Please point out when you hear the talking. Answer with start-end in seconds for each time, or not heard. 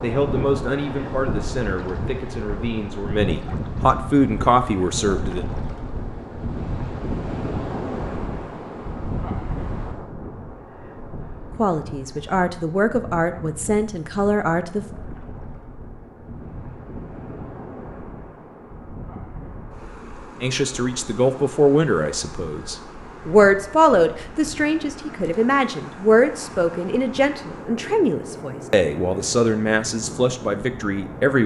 0.0-5.5, 11.6-14.8, 20.4-31.4.